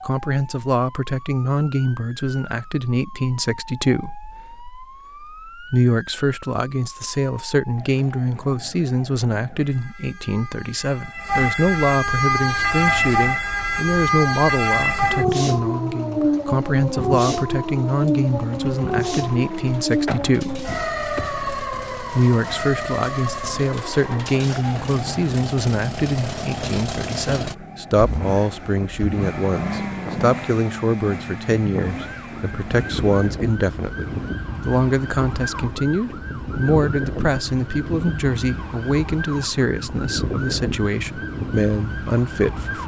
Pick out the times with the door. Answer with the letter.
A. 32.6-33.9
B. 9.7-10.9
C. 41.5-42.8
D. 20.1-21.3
D.